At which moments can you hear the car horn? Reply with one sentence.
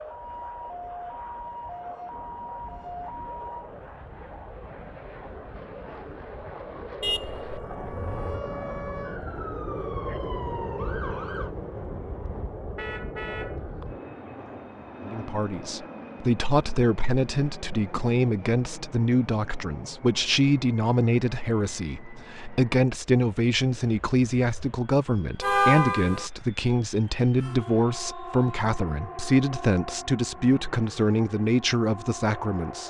You can hear the car horn from 7.0 to 8.4 s, from 12.8 to 13.6 s and from 25.4 to 26.3 s.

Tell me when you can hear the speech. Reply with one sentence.
You can hear the speech from 15.1 to 32.8 s.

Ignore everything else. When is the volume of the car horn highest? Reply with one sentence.
The loudest moment of the car horn is at 26 seconds.